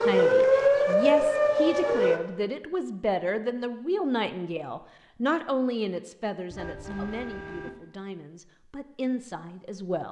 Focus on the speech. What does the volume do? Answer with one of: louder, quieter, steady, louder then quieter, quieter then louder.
quieter.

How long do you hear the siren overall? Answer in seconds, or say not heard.
2 s.